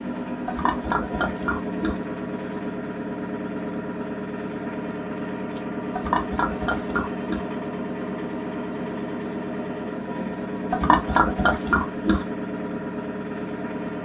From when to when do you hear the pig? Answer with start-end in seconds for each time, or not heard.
0.5-2.0, 6.0-7.4, 10.7-12.2.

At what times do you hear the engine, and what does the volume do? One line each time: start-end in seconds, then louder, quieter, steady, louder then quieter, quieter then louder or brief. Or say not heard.
0.0-13.9 steady.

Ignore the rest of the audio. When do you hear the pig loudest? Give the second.
11 s.